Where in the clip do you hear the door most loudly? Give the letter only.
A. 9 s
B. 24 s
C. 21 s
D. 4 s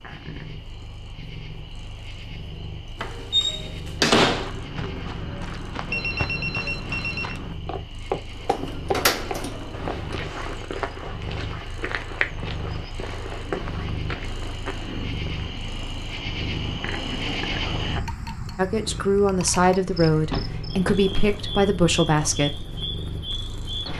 D.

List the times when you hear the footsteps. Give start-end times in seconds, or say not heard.
4.2-15.6.